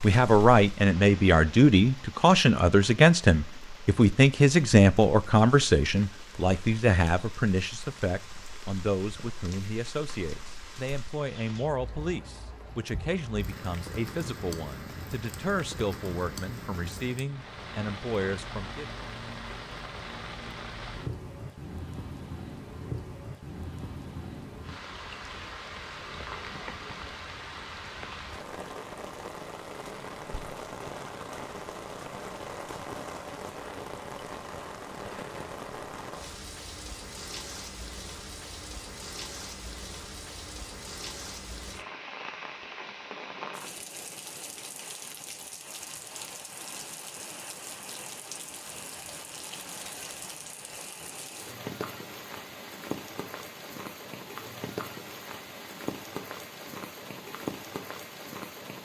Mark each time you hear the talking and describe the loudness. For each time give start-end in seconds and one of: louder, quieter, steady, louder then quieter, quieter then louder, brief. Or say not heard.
0.0-18.9 quieter.